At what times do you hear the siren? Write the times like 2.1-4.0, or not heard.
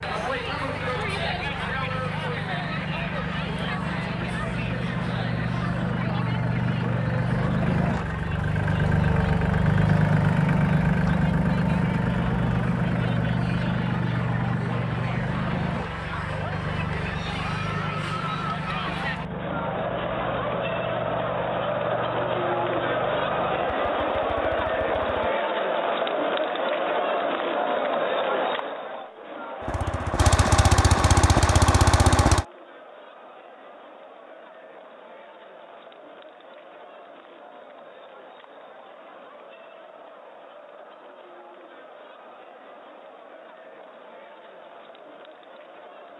not heard.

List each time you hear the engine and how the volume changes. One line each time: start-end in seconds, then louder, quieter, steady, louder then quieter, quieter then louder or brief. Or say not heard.
0.0-25.4 louder then quieter
29.6-32.5 brief.